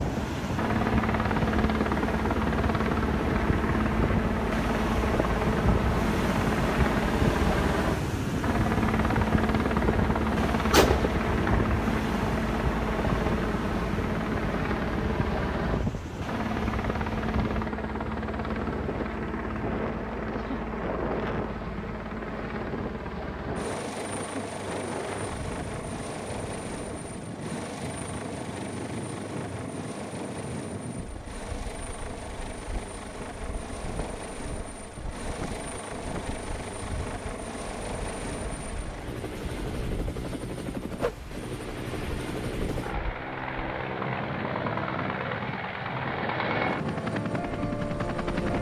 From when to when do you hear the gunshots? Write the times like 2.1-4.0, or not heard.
10.7-11.6.